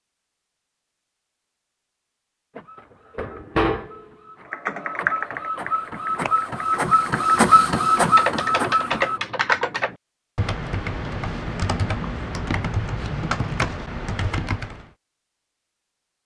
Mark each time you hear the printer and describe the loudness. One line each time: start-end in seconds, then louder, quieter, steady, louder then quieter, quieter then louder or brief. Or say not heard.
2.5-9.2 quieter then louder.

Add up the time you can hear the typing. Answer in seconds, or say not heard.
10 s.